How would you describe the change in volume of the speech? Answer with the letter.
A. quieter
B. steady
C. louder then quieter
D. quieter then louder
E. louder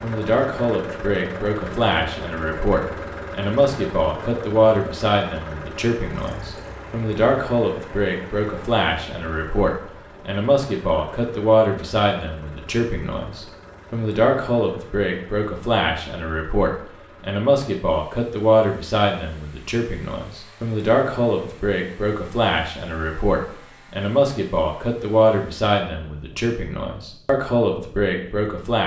B.